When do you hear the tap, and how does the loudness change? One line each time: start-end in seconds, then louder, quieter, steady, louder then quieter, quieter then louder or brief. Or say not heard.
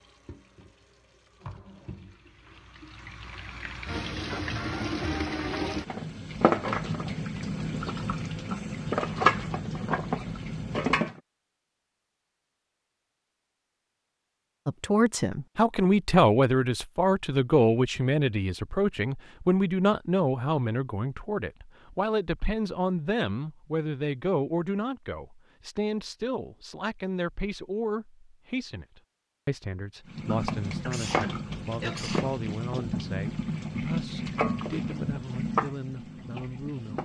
0.0-11.2 louder
30.1-37.0 steady.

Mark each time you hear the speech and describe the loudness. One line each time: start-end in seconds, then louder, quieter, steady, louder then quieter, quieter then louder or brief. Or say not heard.
14.7-37.0 quieter.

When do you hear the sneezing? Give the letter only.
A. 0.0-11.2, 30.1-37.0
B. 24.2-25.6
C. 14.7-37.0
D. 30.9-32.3
D.